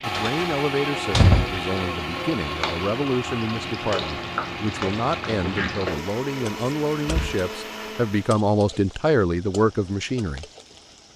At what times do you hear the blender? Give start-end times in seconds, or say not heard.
0.0-8.4.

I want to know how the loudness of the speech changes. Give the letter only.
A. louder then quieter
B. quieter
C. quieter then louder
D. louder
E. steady
D.